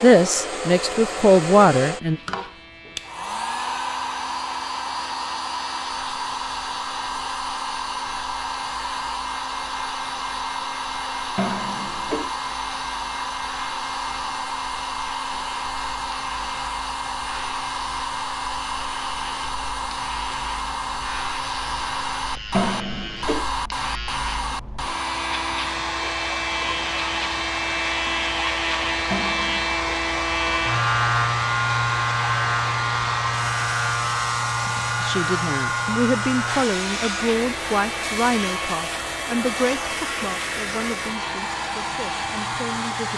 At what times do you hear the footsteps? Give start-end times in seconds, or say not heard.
not heard.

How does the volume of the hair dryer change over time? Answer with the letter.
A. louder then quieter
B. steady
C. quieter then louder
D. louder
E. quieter
B.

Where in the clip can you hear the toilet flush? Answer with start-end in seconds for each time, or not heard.
11.3-12.3, 22.5-23.4, 29.1-29.7.